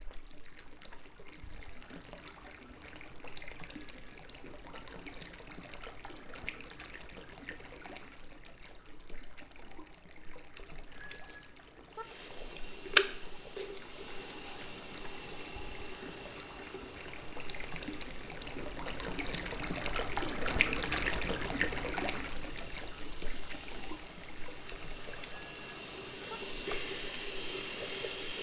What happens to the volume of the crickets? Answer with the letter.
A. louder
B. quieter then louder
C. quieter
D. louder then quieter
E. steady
B.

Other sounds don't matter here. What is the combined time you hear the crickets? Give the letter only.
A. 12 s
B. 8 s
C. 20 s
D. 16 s
D.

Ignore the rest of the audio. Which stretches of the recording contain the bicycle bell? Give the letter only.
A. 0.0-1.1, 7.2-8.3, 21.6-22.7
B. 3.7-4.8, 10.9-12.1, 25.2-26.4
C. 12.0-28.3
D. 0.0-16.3
B.